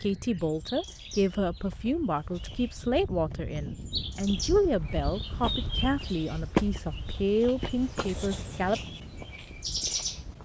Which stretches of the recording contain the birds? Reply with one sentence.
The birds can be heard from 0.0 to 10.3 s.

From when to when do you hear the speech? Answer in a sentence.
The speech can be heard from 0.0 to 8.8 s.